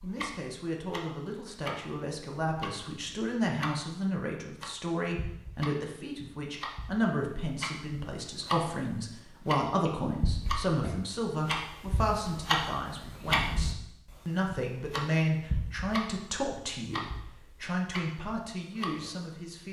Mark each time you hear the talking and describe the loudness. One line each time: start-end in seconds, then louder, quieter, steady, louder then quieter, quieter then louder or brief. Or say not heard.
0.0-19.6 steady.